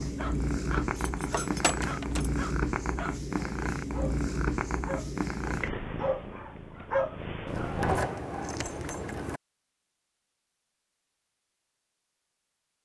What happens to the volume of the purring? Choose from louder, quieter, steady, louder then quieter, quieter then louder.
quieter.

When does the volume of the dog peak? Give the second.
7 s.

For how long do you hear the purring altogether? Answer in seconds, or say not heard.
8 s.